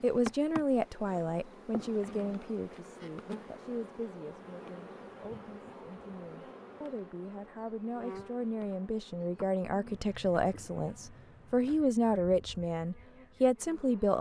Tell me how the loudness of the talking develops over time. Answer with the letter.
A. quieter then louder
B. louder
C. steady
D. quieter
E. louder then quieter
A.